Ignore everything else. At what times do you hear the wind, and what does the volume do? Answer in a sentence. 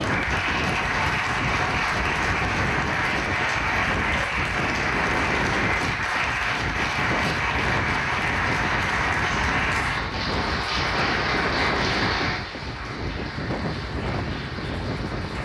The wind can be heard from 0.0 to 15.3 s, at a steady volume.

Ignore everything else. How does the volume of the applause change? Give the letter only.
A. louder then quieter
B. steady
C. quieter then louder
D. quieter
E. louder
D.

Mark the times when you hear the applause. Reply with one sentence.
The applause can be heard from 0.0 to 15.3 s.